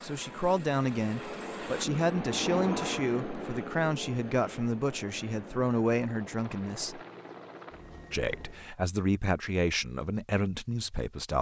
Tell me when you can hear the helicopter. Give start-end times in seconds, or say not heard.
0.0-8.7.